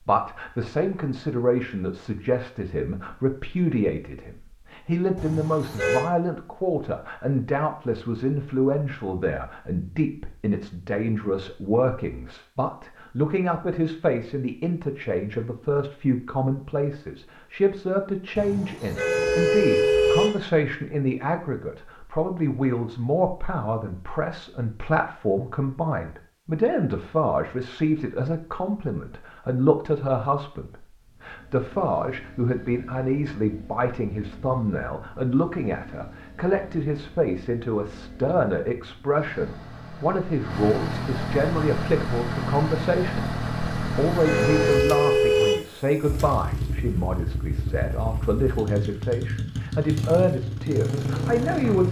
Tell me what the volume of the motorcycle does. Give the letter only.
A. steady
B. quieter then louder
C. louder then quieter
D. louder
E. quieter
D.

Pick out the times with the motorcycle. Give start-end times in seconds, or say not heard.
31.1-51.8.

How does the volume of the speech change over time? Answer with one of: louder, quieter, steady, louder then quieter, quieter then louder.
steady.